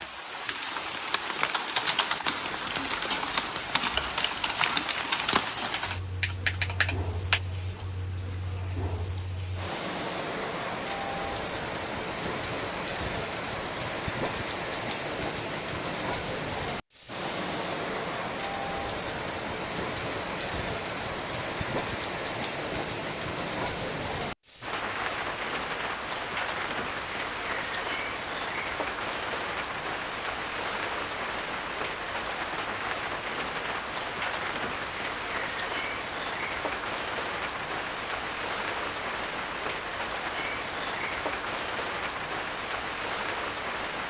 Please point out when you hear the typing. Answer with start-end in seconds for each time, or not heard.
1.4-7.4.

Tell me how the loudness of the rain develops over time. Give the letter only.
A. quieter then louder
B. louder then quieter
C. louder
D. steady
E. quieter
D.